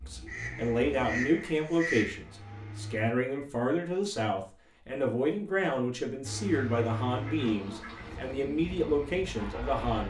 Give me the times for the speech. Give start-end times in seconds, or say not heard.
0.1-10.0.